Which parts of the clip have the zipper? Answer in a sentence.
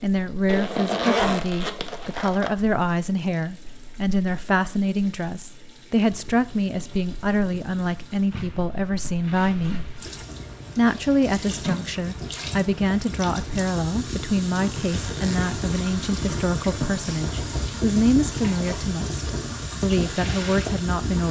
You can hear the zipper from 0.5 to 2.5 s, from 8.3 to 10.2 s and from 14.4 to 15.7 s.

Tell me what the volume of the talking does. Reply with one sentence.
The loudness of the talking stays about the same.